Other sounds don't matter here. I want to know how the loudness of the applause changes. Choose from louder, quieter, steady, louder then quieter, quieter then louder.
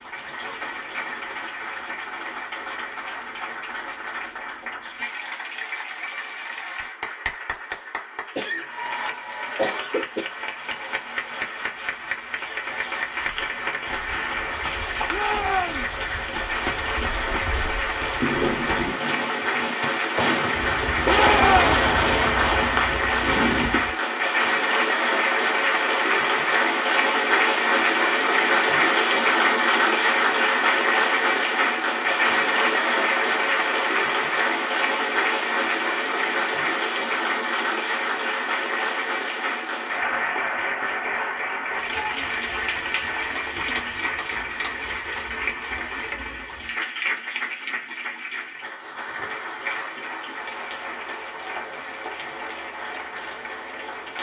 louder then quieter.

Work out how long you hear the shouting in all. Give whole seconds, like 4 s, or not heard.
2 s.